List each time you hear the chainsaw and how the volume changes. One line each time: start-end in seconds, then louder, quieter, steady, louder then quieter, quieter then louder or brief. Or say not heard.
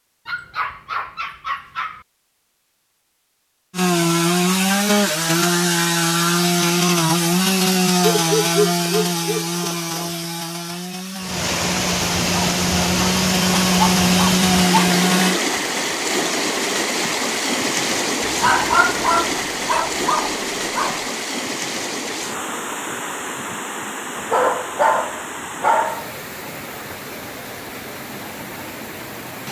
3.7-15.4 quieter then louder.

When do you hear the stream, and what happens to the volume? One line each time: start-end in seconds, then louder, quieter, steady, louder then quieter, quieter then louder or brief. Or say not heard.
11.2-29.4 quieter.